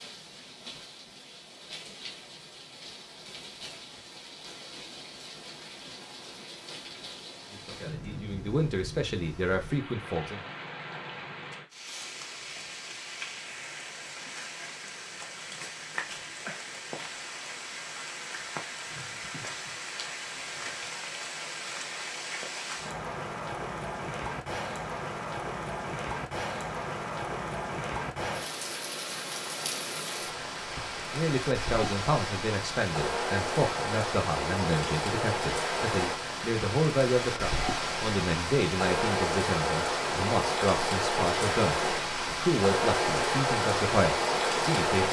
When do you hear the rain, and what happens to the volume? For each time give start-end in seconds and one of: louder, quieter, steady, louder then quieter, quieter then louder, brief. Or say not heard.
0.0-45.0 louder.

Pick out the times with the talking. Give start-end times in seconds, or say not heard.
7.5-10.4, 31.1-45.0.